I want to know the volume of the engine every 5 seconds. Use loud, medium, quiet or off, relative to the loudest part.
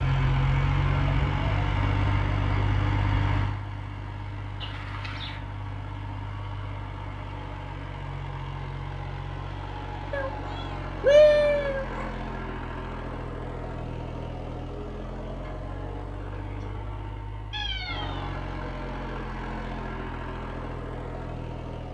loud, medium, medium, medium, medium.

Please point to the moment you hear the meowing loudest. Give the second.
11 s.